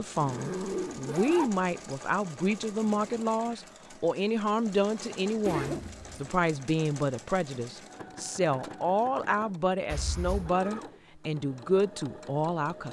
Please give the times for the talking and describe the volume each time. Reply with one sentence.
The talking can be heard from 0.0 to 12.8 s, at a steady volume.